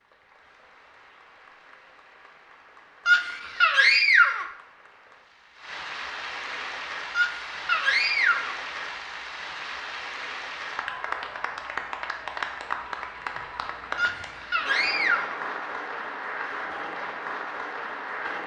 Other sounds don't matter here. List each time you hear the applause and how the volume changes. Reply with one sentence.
You can hear the applause from 0.0 to 18.4 s, getting louder.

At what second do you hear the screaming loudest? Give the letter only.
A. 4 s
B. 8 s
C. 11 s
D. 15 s
A.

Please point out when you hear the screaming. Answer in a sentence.
You can hear the screaming from 3.0 to 4.5 s, from 7.1 to 8.6 s and from 13.9 to 15.4 s.